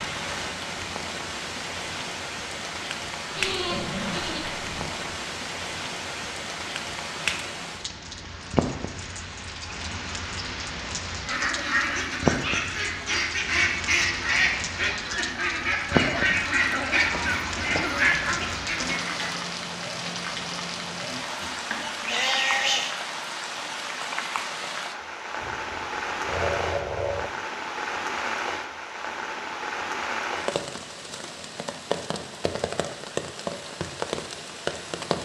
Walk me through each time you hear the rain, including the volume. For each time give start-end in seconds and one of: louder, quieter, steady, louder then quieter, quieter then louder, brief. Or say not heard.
0.0-35.2 steady.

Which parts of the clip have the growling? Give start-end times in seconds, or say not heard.
3.7-4.9, 16.1-18.5, 25.4-27.3.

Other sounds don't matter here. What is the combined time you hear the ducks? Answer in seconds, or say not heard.
8 s.